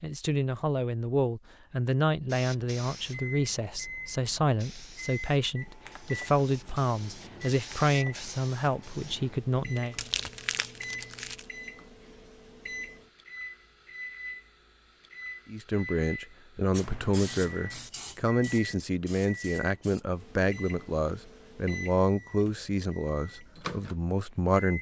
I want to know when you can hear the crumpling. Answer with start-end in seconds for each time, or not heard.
9.8-11.4.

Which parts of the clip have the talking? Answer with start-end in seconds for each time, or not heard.
0.0-9.9, 15.4-24.7.